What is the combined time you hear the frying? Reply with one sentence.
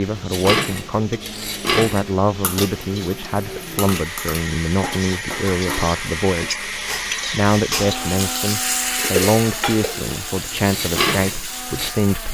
You can hear the frying for 12 seconds altogether.